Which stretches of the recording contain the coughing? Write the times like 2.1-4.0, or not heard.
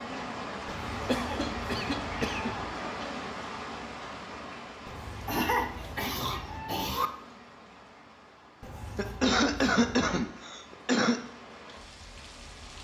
1.1-2.5, 5.2-7.1, 8.9-11.2.